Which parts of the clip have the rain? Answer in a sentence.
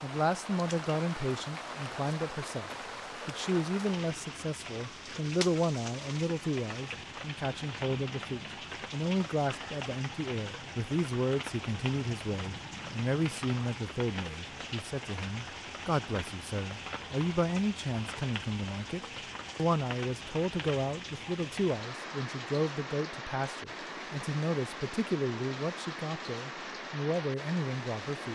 You can hear the rain from 0.0 to 28.3 s.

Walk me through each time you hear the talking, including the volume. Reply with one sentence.
You can hear the talking from 0.0 to 28.3 s, at a steady volume.